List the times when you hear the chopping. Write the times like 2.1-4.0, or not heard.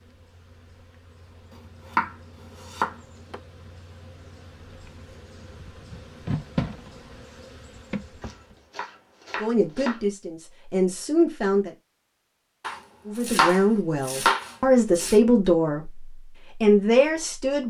1.9-3.0, 8.2-10.1, 12.6-15.2.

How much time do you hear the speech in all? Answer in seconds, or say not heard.
7 s.